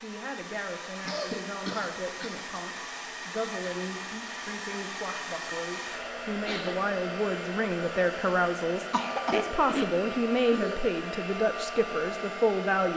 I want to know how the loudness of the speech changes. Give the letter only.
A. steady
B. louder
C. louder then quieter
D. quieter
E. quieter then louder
B.